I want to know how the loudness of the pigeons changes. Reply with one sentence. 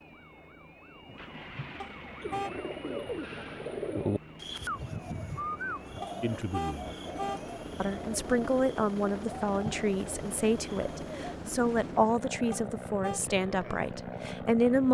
The loudness of the pigeons goes down.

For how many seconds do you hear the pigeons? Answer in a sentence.
You can hear the pigeons for 9 seconds altogether.